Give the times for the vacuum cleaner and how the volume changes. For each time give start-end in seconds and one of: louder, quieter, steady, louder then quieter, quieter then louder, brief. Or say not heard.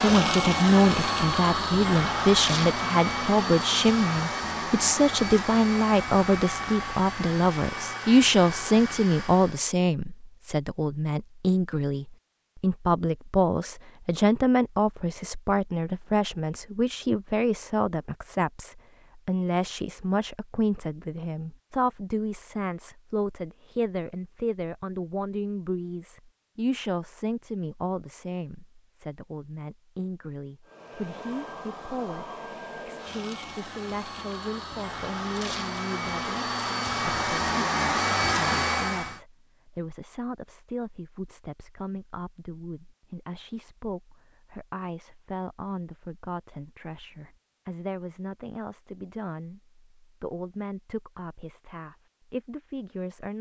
0.0-9.8 quieter
30.6-39.2 louder.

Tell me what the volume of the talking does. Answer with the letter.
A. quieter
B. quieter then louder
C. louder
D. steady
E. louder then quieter
A.